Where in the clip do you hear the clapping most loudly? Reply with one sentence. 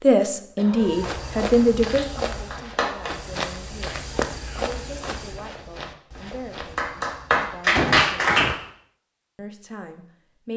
The loudest moment of the clapping is at 8 seconds.